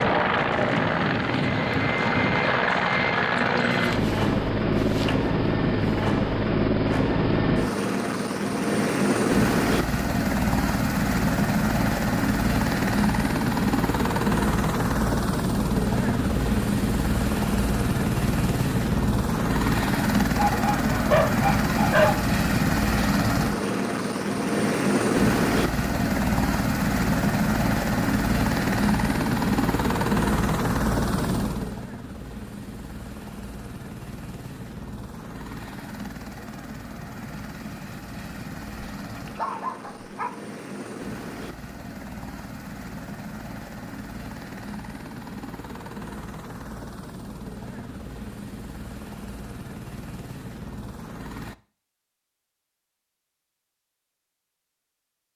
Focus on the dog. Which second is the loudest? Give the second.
22 s.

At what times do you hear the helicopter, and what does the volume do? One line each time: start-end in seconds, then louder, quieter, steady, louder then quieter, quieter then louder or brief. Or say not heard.
0.0-51.5 quieter.